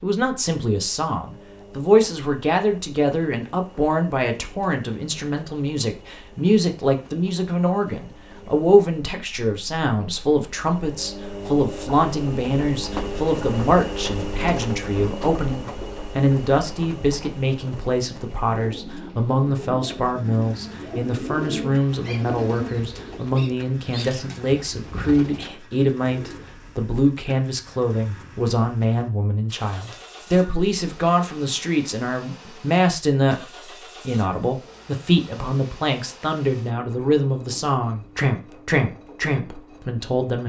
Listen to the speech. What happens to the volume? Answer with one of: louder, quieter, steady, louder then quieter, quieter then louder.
steady.